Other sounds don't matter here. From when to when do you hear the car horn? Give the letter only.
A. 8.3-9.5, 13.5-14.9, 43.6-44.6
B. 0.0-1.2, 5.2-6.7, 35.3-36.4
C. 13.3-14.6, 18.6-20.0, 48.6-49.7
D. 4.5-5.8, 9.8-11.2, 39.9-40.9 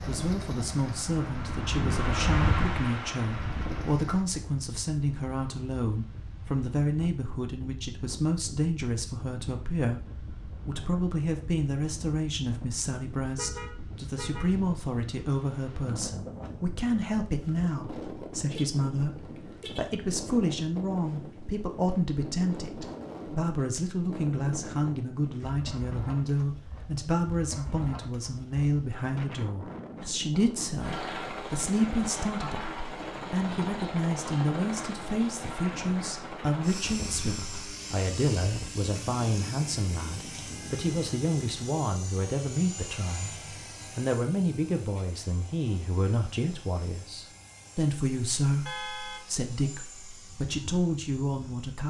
C.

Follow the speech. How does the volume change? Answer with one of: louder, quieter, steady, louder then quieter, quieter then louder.
steady.